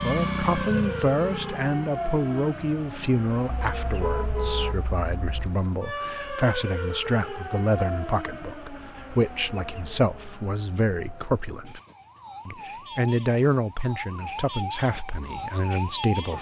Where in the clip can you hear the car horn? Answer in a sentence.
You can hear the car horn from 3.5 to 5.5 s.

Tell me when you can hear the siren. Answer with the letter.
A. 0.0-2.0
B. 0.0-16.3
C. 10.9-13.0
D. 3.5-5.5
B.